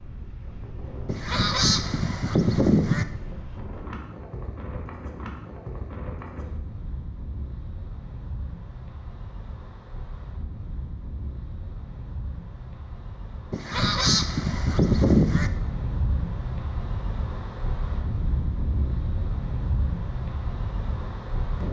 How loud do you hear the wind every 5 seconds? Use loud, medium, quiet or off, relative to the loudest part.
medium, medium, medium, loud, loud.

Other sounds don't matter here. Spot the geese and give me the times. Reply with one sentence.
The geese can be heard from 1.1 to 3.0 s and from 13.5 to 15.5 s.